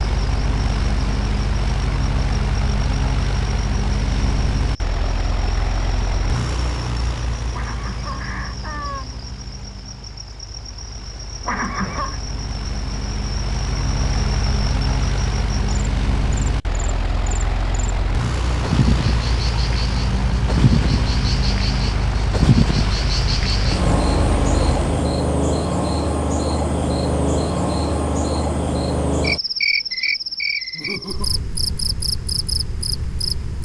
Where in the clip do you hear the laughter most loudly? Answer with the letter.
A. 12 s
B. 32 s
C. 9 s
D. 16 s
A.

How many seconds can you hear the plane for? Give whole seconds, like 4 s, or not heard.
25 s.